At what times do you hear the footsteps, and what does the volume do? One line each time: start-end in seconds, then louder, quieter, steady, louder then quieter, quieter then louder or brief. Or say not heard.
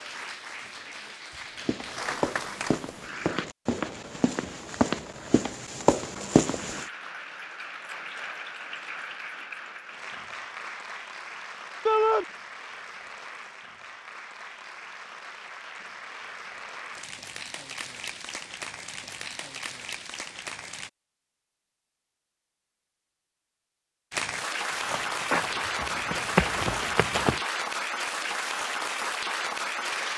1.6-6.8 louder
24.7-27.4 brief.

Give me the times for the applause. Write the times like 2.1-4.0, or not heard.
0.0-3.5, 6.5-20.9, 24.1-30.1.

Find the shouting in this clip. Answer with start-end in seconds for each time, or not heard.
11.8-12.2.